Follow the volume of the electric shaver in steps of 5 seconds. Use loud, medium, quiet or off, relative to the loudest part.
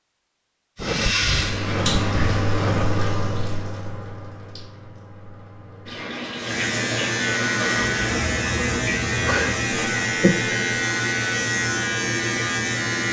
off, loud, loud.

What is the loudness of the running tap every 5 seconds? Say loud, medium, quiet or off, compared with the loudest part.
loud, medium, off.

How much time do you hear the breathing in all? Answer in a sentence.
You can hear the breathing for 2 seconds altogether.